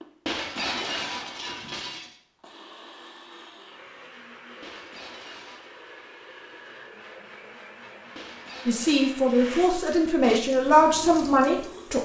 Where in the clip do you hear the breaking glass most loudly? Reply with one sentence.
The volume of the breaking glass peaks at 1 second.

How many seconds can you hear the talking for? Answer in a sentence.
The talking can be heard for 3 seconds in total.